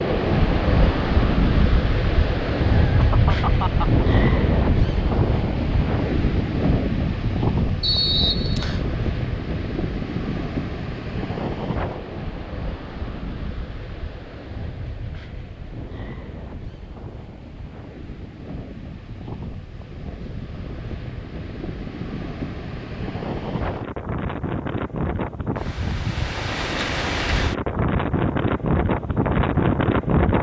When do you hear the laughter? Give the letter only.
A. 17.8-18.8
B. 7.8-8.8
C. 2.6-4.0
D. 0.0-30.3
C.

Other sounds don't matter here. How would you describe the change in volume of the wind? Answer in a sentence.
The loudness of the wind goes down, then up.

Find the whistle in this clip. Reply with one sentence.
You can hear the whistle from 7.8 to 8.8 s.